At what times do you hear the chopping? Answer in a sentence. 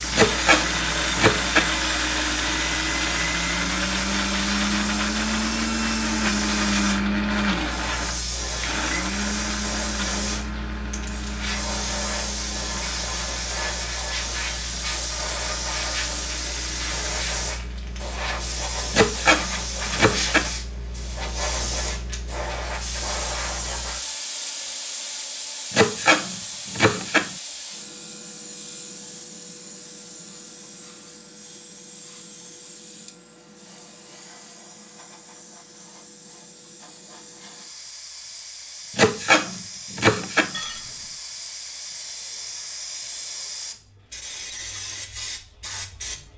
The chopping can be heard from 0.1 to 1.7 s, from 18.9 to 20.5 s, from 25.7 to 27.3 s and from 39.0 to 40.5 s.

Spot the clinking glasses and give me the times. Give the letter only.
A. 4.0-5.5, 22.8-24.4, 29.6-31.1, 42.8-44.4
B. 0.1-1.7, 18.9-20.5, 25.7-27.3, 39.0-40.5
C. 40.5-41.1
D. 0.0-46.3
C.